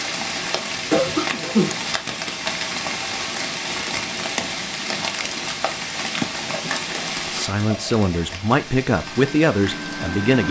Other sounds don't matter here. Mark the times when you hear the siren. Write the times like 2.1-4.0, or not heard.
not heard.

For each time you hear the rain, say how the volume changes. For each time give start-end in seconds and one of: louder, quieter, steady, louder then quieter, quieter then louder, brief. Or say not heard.
0.0-10.4 quieter.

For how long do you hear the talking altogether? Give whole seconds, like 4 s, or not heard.
3 s.